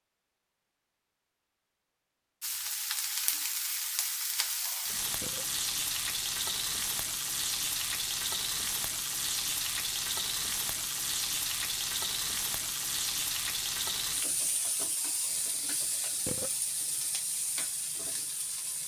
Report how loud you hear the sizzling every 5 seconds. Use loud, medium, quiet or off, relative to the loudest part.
loud, loud, loud, medium.